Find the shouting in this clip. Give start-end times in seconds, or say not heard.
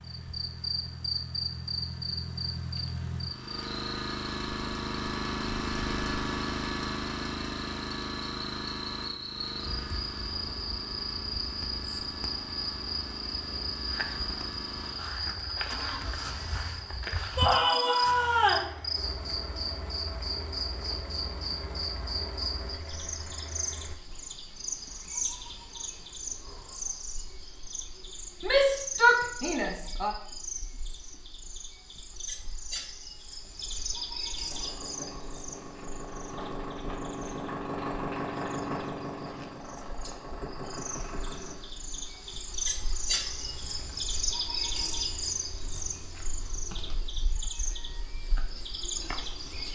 17.4-18.7, 28.4-30.1.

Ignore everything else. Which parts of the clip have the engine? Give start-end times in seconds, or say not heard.
0.0-23.9, 34.5-47.0.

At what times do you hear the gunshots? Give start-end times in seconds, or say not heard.
not heard.